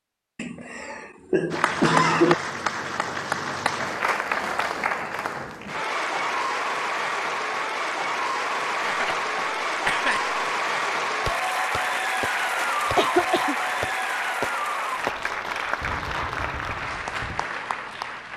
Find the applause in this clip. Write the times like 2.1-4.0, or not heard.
1.5-18.3.